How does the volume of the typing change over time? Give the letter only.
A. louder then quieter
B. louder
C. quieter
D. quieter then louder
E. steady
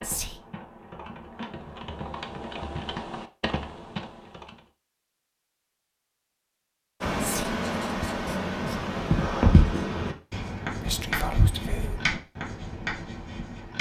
B.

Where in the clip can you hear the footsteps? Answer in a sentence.
You can't hear the footsteps here.